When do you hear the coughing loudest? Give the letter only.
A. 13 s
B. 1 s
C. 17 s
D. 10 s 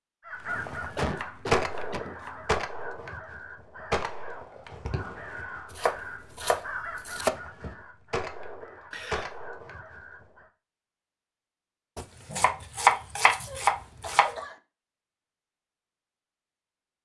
B.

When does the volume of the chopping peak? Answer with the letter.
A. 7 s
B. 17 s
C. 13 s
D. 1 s
C.